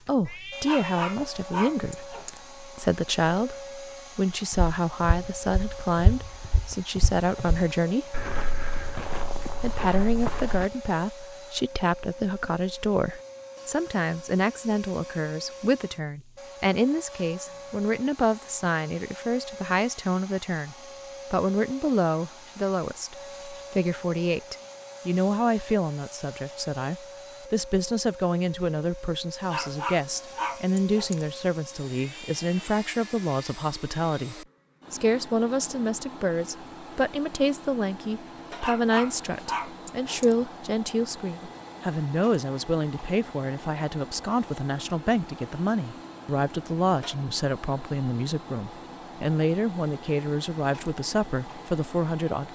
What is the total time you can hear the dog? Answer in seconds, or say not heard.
5 s.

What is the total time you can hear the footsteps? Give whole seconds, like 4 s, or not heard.
6 s.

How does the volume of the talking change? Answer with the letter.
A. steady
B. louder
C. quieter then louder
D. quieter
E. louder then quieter
A.